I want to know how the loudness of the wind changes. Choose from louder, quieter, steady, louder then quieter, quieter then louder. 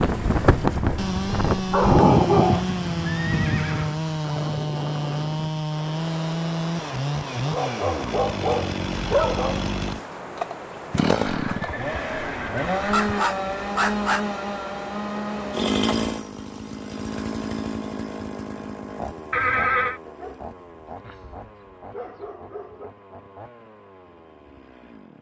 quieter.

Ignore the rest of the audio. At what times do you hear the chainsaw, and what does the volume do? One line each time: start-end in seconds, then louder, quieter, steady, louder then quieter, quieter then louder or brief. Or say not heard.
0.0-25.1 quieter.